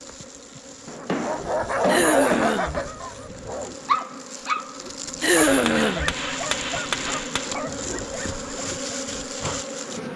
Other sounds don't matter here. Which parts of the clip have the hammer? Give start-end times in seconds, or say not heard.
0.8-2.9, 5.4-7.5.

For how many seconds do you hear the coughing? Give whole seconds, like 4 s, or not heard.
2 s.